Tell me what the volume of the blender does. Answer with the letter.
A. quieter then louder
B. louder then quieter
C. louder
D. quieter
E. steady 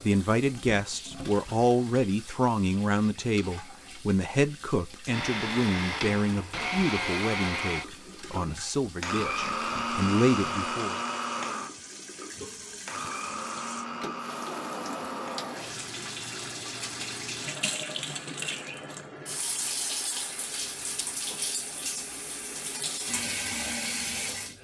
D.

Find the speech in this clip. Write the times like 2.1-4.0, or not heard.
0.0-11.0.